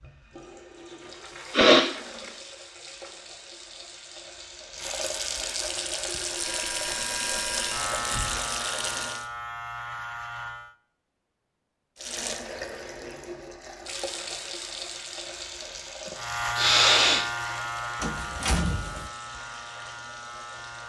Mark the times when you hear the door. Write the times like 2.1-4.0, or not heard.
1.0-3.2, 8.0-8.4, 18.0-19.1.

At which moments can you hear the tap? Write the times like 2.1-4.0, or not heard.
0.0-9.2, 11.9-20.8.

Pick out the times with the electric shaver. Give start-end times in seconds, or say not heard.
6.2-10.8, 16.1-20.8.